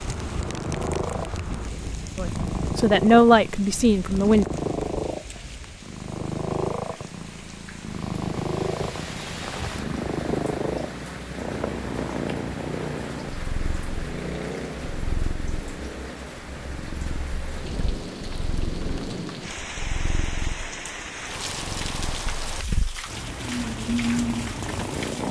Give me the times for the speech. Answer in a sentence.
The speech can be heard from 2.1 to 4.5 s.